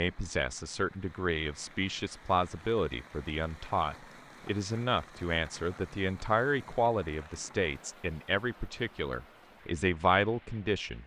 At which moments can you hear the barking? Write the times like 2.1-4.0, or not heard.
not heard.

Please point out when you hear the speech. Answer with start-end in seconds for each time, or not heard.
0.0-11.0.